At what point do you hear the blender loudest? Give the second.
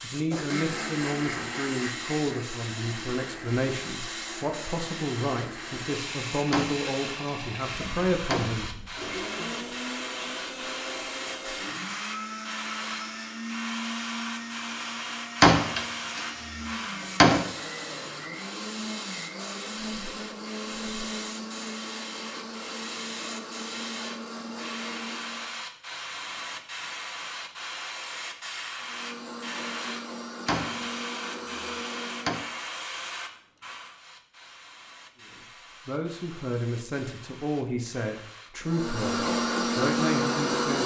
40 s.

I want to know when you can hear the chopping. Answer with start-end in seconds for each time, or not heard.
not heard.